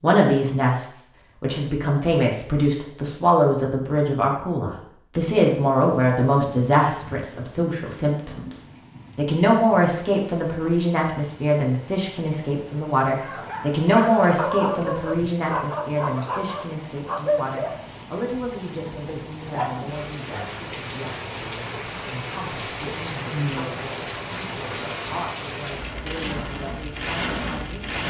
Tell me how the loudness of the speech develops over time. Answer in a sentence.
The volume of the speech goes down.